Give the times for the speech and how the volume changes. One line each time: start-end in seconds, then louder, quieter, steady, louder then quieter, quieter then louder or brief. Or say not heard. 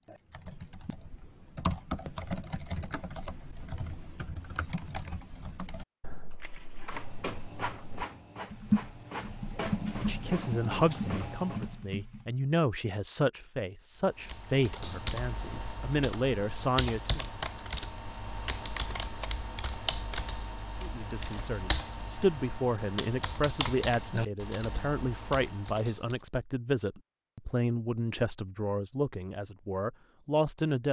10.0-17.2 steady
20.8-30.8 steady.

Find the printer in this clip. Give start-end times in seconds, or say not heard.
6.4-11.8.